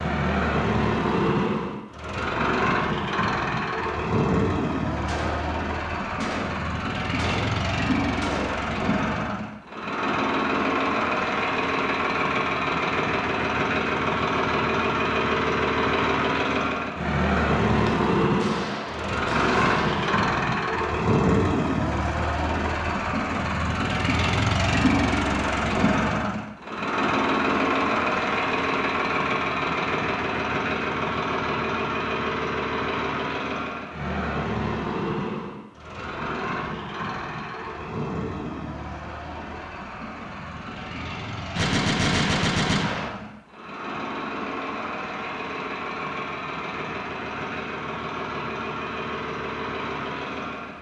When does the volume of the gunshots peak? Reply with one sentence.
The loudest moment of the gunshots is at 42 seconds.